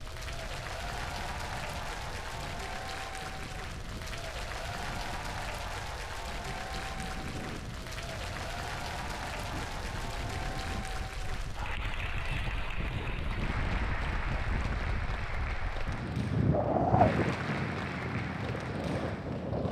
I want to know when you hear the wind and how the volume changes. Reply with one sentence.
You can hear the wind from 0.0 to 19.6 s, getting louder.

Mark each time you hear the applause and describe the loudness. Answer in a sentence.
You can hear the applause from 0.0 to 19.6 s, at a steady volume.